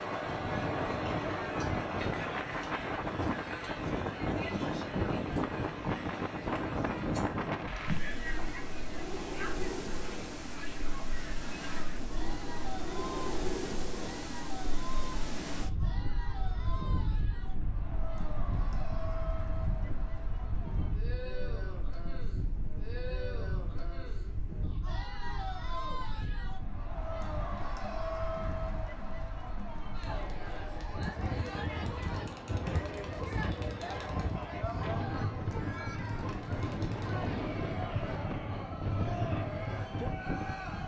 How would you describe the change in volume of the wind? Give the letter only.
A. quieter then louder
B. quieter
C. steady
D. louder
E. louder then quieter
A.